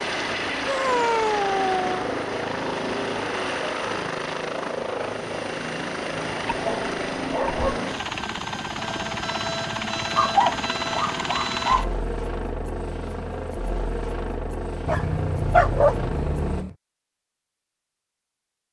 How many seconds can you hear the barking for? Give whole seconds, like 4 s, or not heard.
6 s.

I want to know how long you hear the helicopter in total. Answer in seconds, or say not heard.
17 s.